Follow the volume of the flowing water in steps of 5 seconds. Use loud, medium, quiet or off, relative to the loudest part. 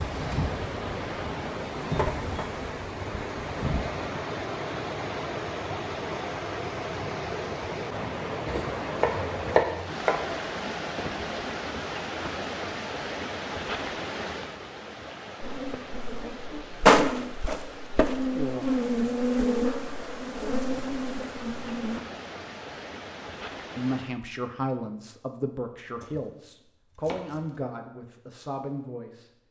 loud, loud, loud, medium, medium, off.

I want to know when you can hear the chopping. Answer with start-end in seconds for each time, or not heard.
8.4-10.2, 26.0-27.7.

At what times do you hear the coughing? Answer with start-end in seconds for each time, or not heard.
not heard.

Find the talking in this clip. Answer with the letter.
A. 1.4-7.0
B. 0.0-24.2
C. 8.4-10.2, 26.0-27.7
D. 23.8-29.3
D.